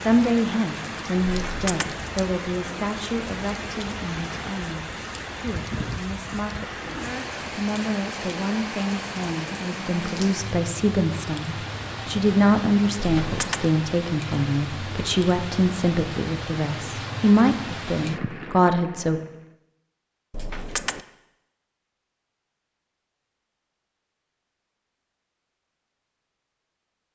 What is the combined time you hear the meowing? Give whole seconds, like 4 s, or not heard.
2 s.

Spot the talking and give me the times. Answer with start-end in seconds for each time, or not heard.
0.0-19.2.